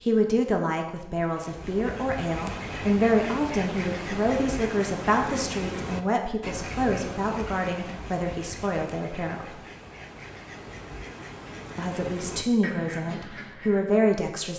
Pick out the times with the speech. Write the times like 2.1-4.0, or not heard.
0.0-9.6, 11.8-14.5.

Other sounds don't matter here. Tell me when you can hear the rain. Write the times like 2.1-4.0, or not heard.
not heard.